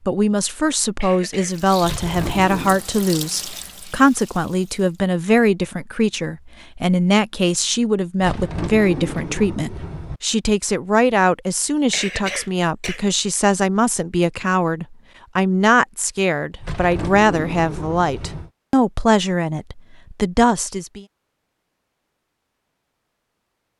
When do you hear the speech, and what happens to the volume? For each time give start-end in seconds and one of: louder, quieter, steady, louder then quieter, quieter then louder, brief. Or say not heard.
0.1-21.1 steady.